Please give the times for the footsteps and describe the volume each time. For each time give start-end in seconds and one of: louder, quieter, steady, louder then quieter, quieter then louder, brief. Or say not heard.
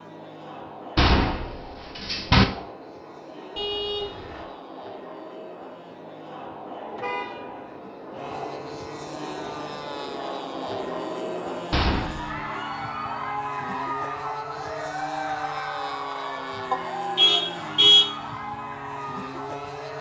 not heard.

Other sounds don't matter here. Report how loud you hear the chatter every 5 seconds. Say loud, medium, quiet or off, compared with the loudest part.
medium, medium, loud, loud.